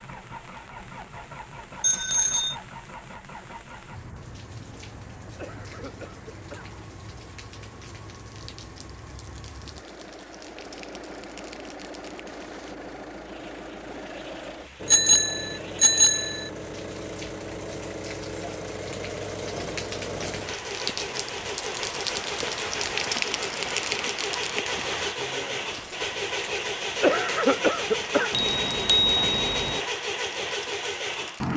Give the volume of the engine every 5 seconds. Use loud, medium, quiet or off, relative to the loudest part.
quiet, quiet, medium, medium, loud, loud, loud.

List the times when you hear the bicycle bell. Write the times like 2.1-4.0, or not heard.
1.8-2.5, 14.8-16.5, 28.3-29.8.